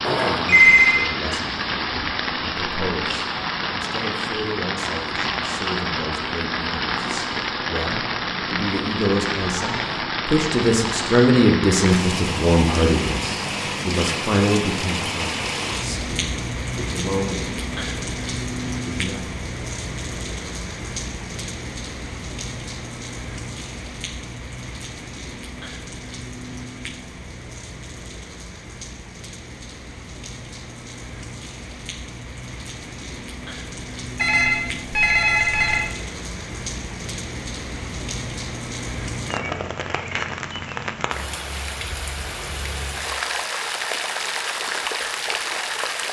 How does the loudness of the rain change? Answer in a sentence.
The volume of the rain goes down, then up.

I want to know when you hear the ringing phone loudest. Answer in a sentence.
The volume of the ringing phone peaks at 1 second.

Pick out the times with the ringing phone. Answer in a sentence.
You can hear the ringing phone from 0.0 to 1.0 s and from 34.1 to 35.8 s.